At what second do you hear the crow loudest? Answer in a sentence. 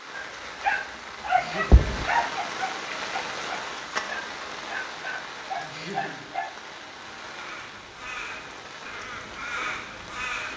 The volume of the crow peaks at 10 seconds.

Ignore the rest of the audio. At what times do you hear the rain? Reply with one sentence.
The rain can be heard from 0.0 to 10.5 s.